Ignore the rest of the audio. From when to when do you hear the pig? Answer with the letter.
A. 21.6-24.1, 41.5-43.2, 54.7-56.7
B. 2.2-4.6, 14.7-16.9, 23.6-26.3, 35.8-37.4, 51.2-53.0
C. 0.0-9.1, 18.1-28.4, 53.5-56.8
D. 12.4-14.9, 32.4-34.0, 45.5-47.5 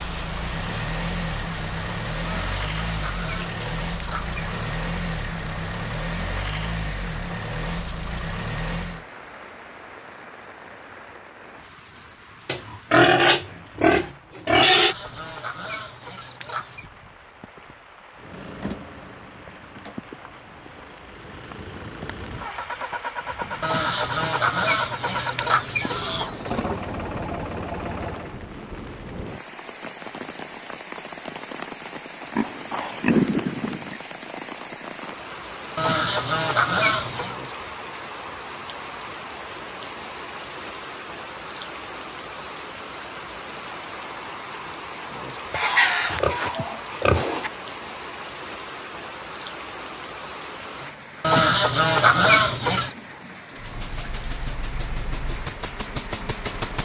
D.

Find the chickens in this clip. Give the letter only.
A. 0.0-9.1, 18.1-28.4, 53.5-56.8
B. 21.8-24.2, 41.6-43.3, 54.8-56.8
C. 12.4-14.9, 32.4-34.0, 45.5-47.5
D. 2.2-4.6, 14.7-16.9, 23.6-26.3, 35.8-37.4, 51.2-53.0
D.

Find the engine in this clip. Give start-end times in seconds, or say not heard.
0.0-9.1, 18.1-28.4, 53.5-56.8.